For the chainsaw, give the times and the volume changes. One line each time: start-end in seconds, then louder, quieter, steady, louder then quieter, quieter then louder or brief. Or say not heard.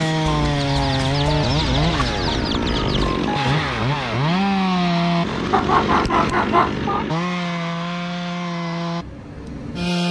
0.0-10.0 quieter.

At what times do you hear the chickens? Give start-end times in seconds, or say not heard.
0.7-3.2, 5.5-7.0.